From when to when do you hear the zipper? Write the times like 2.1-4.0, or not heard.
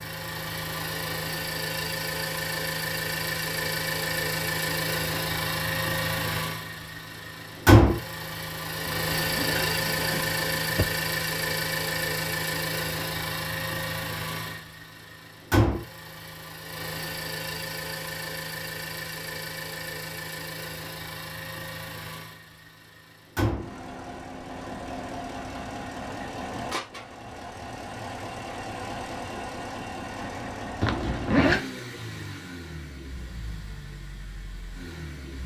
8.8-10.8, 30.8-31.6.